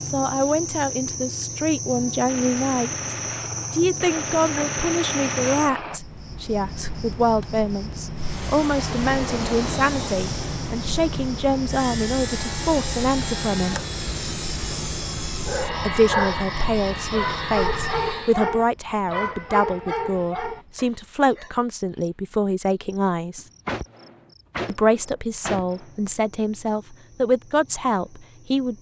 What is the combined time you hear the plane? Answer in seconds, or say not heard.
10 s.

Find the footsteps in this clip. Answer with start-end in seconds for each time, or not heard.
not heard.